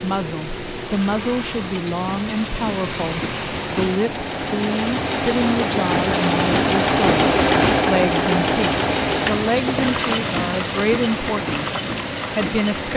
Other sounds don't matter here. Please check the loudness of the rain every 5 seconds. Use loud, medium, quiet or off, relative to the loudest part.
medium, loud, loud.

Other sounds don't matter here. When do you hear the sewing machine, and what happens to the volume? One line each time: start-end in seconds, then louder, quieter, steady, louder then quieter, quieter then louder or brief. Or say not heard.
0.0-12.9 louder then quieter.